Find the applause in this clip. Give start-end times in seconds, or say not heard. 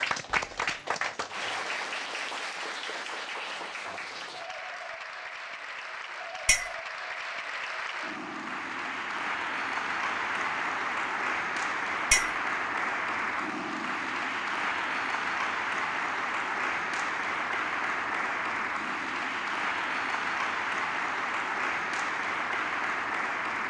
0.0-23.6.